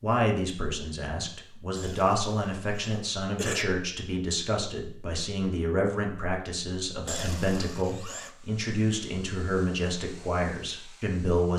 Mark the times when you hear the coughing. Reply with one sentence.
You can hear the coughing from 1.8 to 3.6 s and from 7.0 to 8.3 s.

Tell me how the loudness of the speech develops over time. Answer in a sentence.
The loudness of the speech stays about the same.